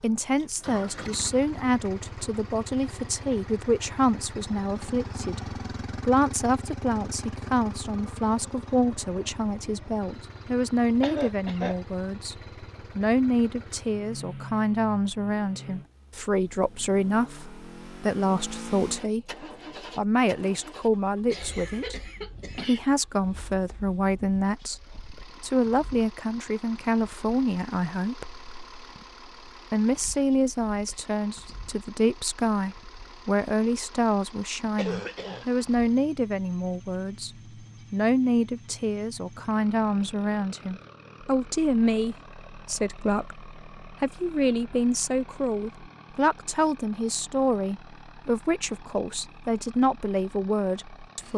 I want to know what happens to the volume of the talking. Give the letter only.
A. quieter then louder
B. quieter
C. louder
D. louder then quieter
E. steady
E.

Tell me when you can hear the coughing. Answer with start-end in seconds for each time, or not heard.
11.0-11.8, 21.2-22.8, 34.8-35.5.